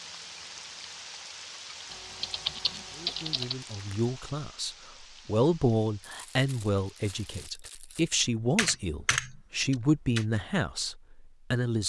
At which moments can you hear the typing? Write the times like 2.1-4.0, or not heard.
1.9-3.5, 8.6-10.2.